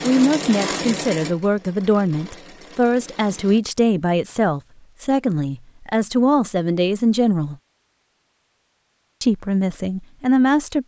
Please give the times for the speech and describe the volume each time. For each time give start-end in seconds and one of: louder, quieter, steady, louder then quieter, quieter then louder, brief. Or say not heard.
0.0-7.5 steady
9.2-10.8 brief.